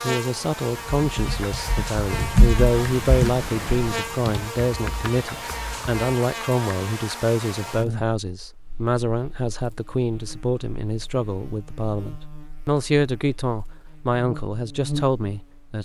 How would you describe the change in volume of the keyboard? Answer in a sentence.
The loudness of the keyboard goes up, then down.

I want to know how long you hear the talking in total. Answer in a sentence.
You can hear the talking for 16 seconds altogether.